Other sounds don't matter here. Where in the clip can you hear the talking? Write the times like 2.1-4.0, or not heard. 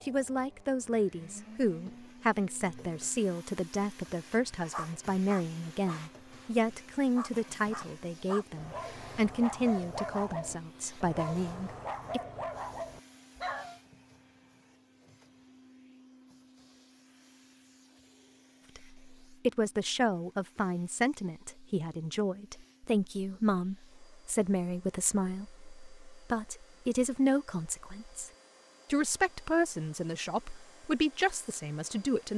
0.0-12.2, 18.8-28.3, 28.9-32.3.